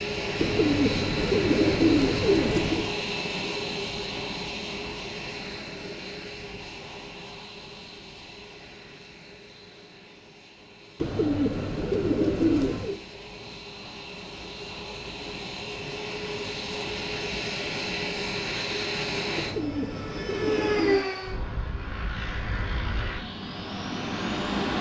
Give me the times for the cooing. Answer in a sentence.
The cooing can be heard from 0.3 to 2.9 s, from 11.0 to 13.0 s and from 19.4 to 21.1 s.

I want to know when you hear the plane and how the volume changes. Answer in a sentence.
The plane can be heard from 0.0 to 24.7 s, getting quieter then louder.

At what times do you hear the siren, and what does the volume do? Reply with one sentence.
You can't hear the siren here.